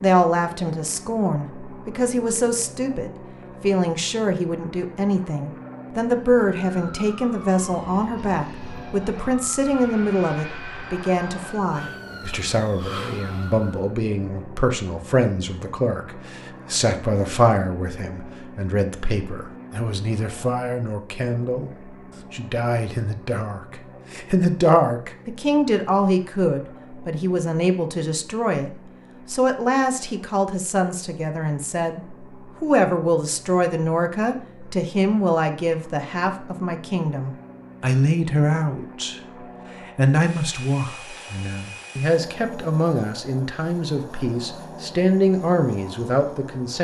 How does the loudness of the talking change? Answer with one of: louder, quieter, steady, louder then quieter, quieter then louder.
steady.